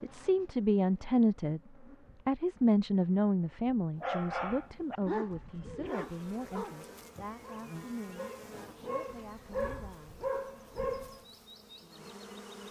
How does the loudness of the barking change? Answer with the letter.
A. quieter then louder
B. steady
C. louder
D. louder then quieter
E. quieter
A.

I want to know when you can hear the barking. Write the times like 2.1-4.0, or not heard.
4.0-11.2.